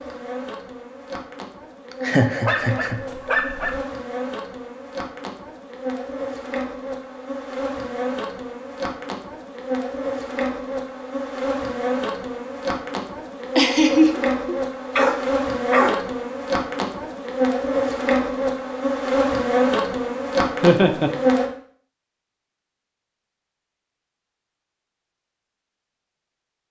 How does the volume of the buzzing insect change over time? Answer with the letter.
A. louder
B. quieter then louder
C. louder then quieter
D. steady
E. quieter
A.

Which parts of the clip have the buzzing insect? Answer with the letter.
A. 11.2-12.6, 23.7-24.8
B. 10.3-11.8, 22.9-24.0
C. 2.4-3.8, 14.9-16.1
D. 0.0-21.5
D.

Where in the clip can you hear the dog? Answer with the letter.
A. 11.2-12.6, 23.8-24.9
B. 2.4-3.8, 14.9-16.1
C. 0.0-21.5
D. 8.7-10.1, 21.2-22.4
B.